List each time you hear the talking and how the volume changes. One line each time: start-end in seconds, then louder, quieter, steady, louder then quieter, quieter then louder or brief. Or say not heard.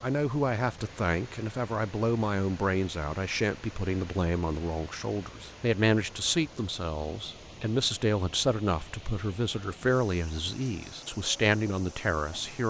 0.0-12.6 steady.